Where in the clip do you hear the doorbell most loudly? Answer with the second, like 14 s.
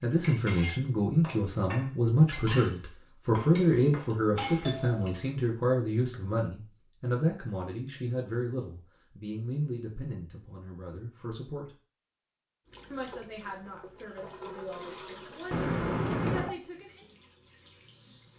16 s.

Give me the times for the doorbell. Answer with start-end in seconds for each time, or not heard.
4.3-5.2, 15.5-16.6.